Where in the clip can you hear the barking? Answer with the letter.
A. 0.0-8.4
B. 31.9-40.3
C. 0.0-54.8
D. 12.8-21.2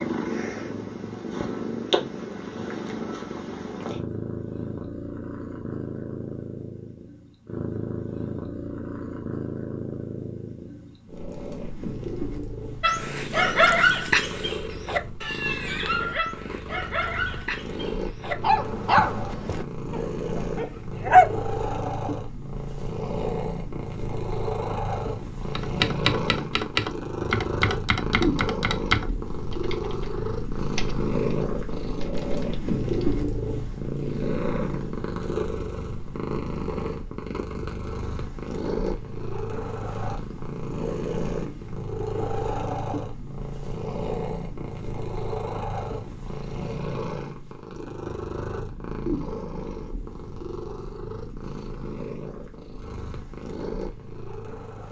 D.